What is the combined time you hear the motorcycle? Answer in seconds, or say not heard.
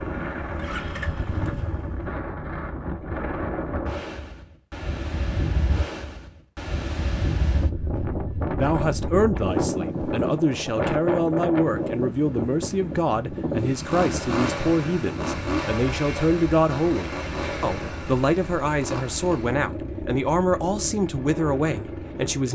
11 s.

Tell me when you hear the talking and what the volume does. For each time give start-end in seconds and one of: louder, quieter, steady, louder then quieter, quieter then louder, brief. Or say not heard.
8.6-22.5 steady.